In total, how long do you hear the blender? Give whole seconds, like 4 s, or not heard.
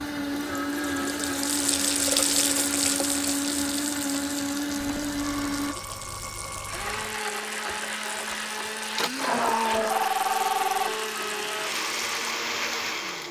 13 s.